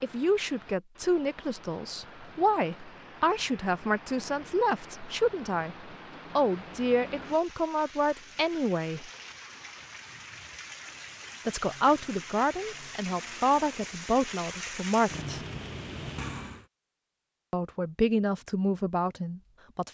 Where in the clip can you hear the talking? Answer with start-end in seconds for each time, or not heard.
0.0-9.1, 11.4-15.4, 17.5-19.8.